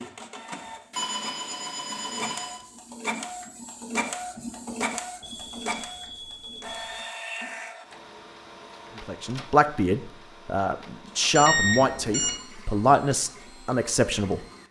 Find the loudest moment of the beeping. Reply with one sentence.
The loudest moment of the beeping is at 12 seconds.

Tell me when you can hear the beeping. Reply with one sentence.
The beeping can be heard from 0.9 to 2.6 s, from 5.2 to 7.0 s and from 11.3 to 12.3 s.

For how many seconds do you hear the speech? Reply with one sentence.
The speech can be heard for 6 seconds in total.